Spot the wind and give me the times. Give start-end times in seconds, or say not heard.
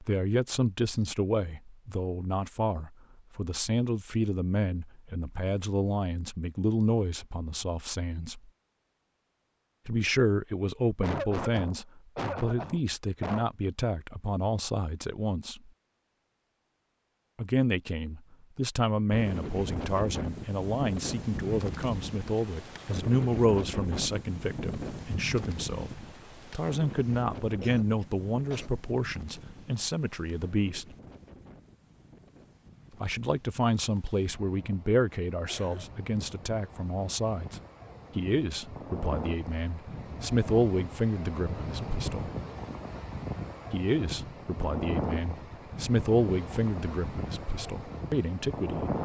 19.1-48.9.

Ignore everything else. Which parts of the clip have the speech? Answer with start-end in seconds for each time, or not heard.
0.0-8.5, 9.8-15.7, 17.4-30.9, 33.0-42.3, 43.7-48.9.